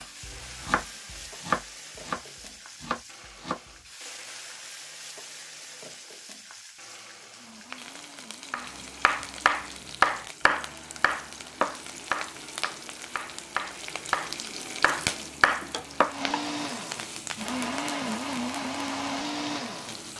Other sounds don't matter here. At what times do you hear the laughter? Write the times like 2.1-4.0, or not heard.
not heard.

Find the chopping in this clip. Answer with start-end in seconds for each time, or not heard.
0.0-3.8, 8.5-16.1.